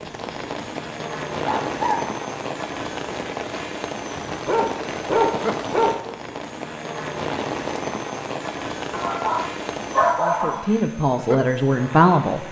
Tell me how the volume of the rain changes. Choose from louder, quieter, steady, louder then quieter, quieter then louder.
steady.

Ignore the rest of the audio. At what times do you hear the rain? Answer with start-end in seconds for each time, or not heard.
0.0-10.2.